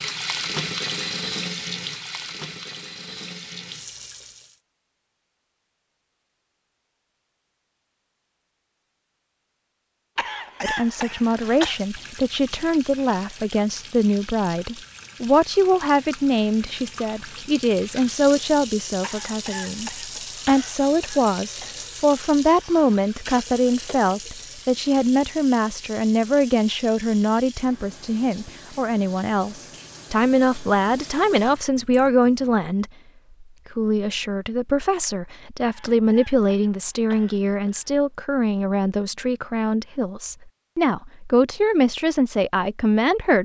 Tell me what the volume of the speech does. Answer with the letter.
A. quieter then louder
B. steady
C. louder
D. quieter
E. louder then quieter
B.